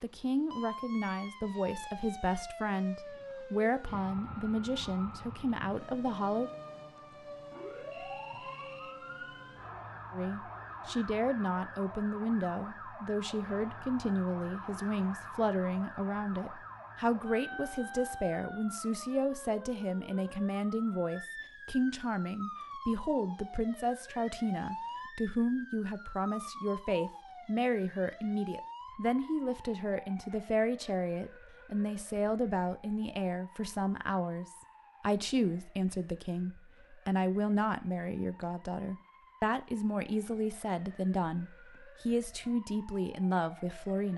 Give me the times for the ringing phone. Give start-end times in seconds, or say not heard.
7.9-9.0.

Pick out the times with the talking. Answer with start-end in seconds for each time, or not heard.
0.0-6.5, 10.1-44.1.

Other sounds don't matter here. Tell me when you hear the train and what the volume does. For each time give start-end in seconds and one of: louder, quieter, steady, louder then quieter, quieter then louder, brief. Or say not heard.
not heard.